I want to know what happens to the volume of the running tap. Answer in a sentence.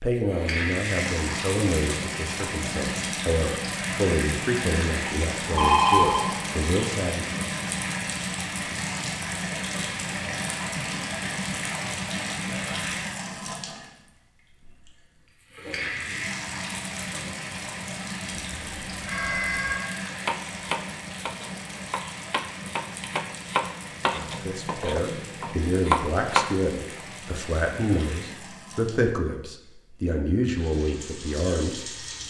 The loudness of the running tap goes down.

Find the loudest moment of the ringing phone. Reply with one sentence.
The volume of the ringing phone peaks at 6 seconds.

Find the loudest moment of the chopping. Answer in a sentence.
The volume of the chopping peaks at 26 seconds.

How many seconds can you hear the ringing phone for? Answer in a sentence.
The ringing phone can be heard for 2 seconds in total.